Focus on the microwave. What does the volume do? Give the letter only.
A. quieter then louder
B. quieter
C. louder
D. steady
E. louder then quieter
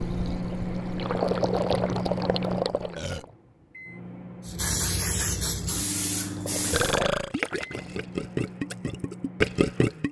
B.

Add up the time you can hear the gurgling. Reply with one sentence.
The gurgling can be heard for 7 seconds in total.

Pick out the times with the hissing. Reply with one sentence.
You can hear the hissing from 4.5 to 7.0 s.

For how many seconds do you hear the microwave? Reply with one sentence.
The microwave can be heard for 10 seconds in total.